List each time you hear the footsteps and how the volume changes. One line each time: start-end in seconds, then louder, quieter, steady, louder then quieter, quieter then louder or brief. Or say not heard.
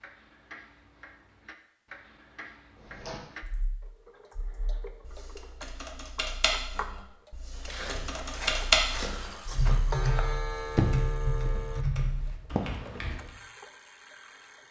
7.5-12.6 louder then quieter.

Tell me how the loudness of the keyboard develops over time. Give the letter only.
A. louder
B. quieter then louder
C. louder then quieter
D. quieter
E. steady
C.